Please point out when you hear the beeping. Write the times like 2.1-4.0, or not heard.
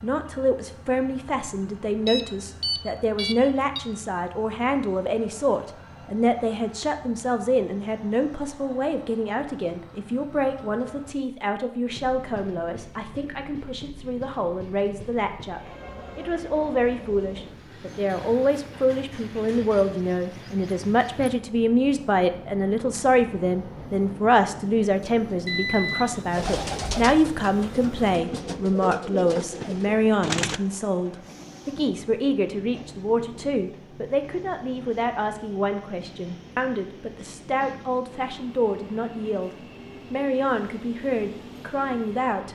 2.0-3.8, 25.4-28.2.